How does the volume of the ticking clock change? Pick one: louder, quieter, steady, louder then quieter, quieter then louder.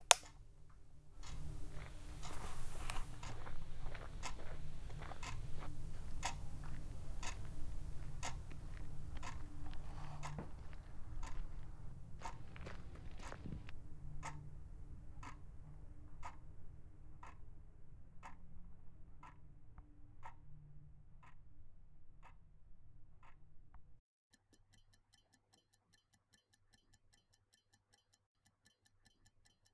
quieter.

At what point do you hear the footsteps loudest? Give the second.
13 s.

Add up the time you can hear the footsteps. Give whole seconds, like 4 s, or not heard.
12 s.